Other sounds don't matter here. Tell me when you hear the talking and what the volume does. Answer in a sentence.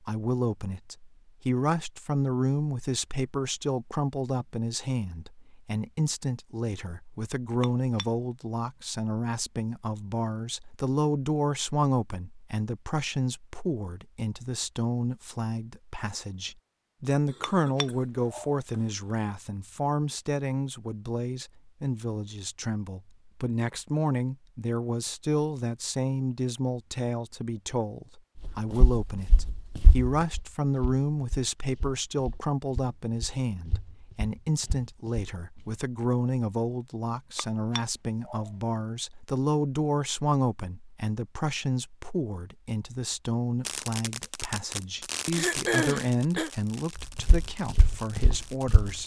You can hear the talking from 0.0 to 49.0 s, at a steady volume.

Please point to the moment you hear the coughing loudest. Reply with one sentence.
The volume of the coughing peaks at 46 seconds.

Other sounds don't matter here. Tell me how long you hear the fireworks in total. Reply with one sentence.
You can hear the fireworks for 5 seconds altogether.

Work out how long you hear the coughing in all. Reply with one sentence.
You can hear the coughing for 3 seconds altogether.